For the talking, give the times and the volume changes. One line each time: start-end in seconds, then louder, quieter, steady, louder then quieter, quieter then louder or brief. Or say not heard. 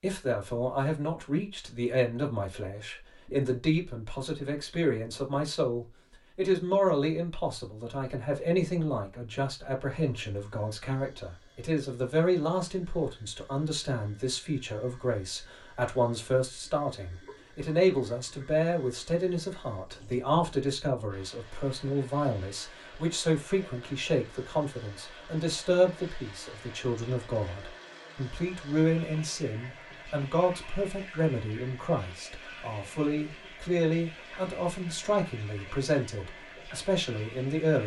0.0-37.8 steady.